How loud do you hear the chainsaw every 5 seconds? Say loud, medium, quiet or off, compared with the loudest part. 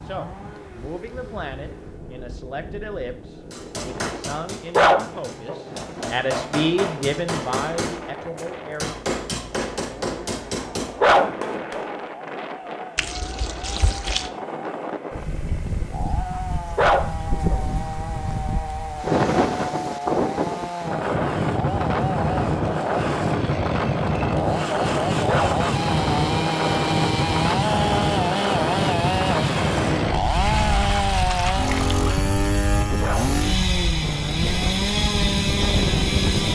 quiet, quiet, quiet, medium, medium, loud, loud, loud.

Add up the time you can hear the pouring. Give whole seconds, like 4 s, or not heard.
3 s.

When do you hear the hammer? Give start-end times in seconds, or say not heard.
3.5-11.9.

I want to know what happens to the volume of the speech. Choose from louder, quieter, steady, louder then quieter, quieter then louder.
louder then quieter.